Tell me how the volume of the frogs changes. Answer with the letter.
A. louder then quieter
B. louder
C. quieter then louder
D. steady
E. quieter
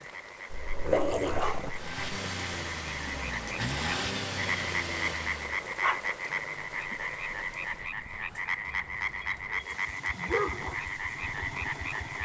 B.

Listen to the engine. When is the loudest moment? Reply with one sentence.
The volume of the engine peaks at 4 seconds.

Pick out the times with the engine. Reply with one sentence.
You can hear the engine from 1.7 to 5.7 s and from 9.7 to 12.2 s.